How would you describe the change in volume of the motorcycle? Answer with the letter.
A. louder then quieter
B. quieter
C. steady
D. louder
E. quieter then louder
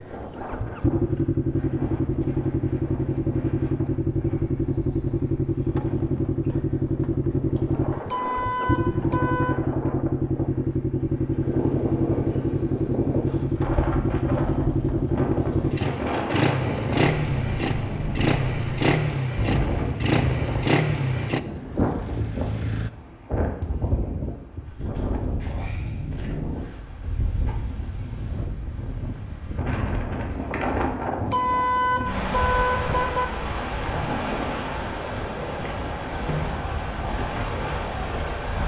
C.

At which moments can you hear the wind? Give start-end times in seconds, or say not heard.
0.0-38.6.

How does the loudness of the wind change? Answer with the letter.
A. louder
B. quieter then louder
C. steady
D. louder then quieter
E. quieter
A.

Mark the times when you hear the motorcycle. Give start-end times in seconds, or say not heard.
0.0-22.9.